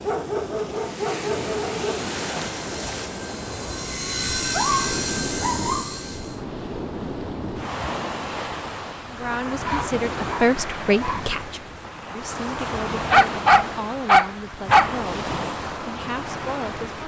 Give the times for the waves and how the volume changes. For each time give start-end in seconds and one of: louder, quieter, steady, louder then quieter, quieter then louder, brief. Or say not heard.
0.0-17.0 steady.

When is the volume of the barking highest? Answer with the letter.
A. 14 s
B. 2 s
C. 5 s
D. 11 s
A.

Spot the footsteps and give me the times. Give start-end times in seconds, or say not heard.
not heard.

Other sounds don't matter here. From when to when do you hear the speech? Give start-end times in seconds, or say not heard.
9.1-17.0.